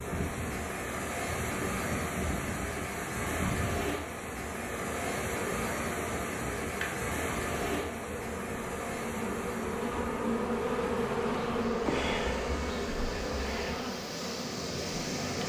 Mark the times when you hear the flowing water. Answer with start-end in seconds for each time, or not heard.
0.0-15.4.